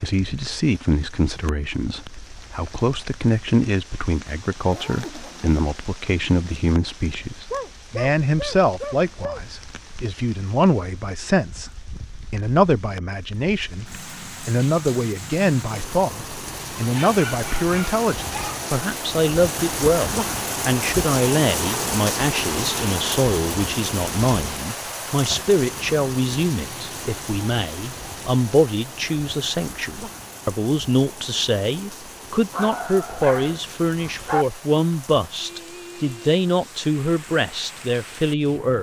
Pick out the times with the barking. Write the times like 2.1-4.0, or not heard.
7.5-9.4, 16.8-18.6, 32.5-34.5.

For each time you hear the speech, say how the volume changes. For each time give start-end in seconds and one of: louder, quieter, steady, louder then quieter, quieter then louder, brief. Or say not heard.
0.0-38.7 steady.